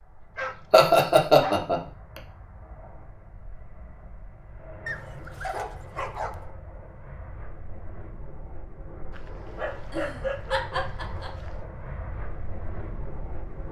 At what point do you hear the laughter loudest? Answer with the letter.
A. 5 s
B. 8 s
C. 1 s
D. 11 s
C.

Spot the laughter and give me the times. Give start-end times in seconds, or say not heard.
0.7-2.2, 9.8-11.5.